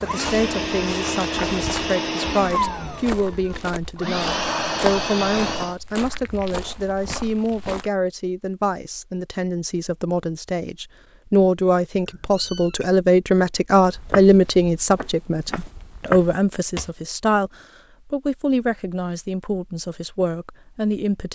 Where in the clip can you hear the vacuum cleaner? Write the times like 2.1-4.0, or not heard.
0.0-5.8.